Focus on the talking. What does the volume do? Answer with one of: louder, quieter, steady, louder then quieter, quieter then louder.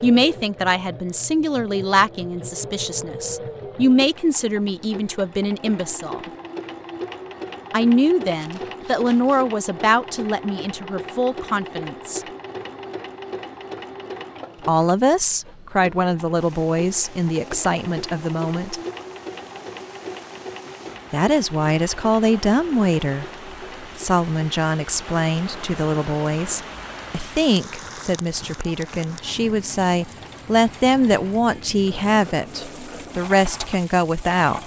steady.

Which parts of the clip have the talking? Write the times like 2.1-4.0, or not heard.
0.0-6.2, 7.7-12.2, 14.7-18.8, 21.1-34.6.